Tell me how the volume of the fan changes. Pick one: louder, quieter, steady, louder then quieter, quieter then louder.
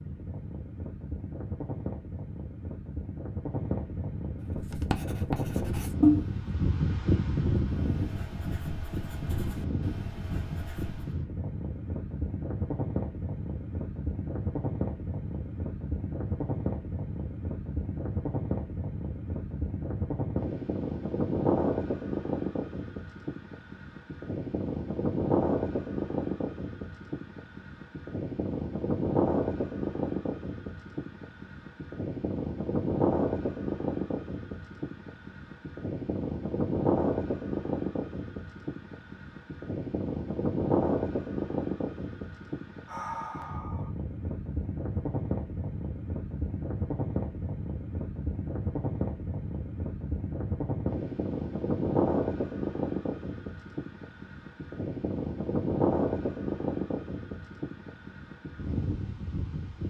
steady.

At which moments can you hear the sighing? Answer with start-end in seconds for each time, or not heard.
42.9-43.9.